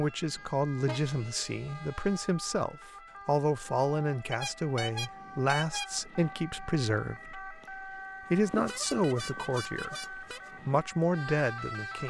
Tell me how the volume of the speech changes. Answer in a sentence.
The volume of the speech stays about the same.